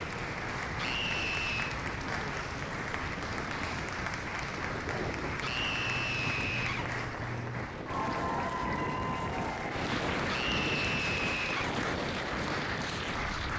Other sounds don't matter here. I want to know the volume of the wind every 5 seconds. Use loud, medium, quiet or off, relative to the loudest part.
medium, loud, loud.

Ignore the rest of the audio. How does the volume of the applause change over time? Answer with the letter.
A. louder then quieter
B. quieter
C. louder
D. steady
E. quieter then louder
D.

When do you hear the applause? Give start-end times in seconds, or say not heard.
0.0-13.5.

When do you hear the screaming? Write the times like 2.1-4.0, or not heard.
0.8-1.8, 5.4-6.9, 10.2-11.8.